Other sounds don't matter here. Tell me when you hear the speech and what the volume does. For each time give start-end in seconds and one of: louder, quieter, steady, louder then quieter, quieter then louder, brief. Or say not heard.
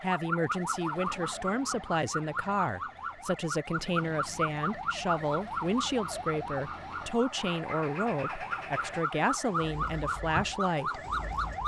0.0-11.0 steady.